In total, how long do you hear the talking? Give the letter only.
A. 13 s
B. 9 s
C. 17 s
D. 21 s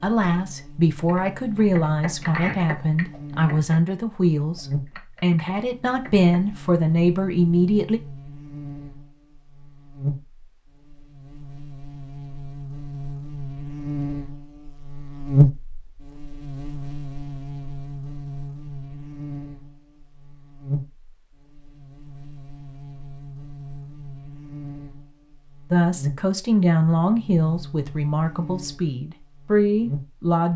A.